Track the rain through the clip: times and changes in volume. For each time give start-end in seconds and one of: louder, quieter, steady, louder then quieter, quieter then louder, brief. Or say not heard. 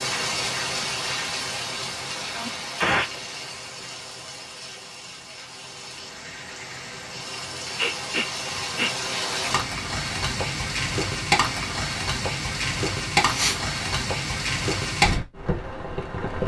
0.0-16.4 quieter then louder.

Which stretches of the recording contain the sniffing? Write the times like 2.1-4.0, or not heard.
2.2-3.2, 7.8-9.1, 13.2-13.6.